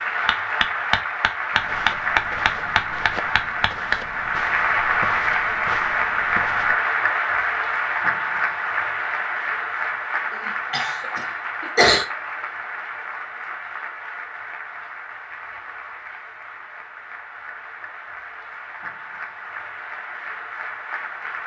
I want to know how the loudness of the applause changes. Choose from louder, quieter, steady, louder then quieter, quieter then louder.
quieter.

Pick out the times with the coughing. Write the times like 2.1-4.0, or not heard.
10.7-12.1.